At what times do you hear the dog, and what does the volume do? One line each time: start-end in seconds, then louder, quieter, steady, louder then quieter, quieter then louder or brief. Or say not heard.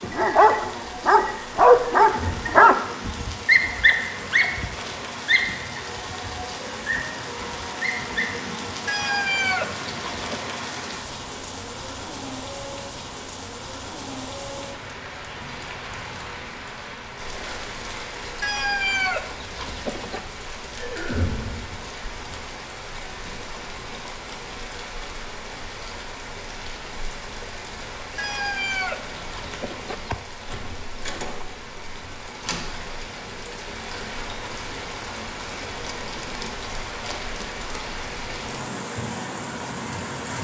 0.0-8.2 quieter.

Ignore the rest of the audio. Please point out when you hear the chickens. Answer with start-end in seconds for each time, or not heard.
8.8-10.4, 18.4-20.2, 28.1-30.1.